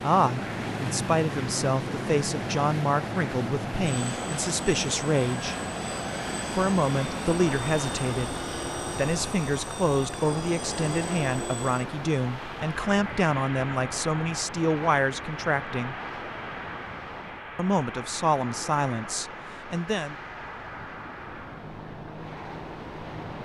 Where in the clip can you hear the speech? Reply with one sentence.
The speech can be heard from 0.0 to 5.5 s, from 6.5 to 15.9 s and from 17.6 to 20.1 s.